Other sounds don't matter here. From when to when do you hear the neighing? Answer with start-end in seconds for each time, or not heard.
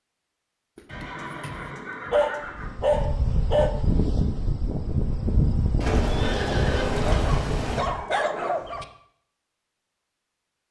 0.8-2.9, 5.8-7.8.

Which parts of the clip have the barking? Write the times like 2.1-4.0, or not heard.
0.8-3.7, 7.0-8.8.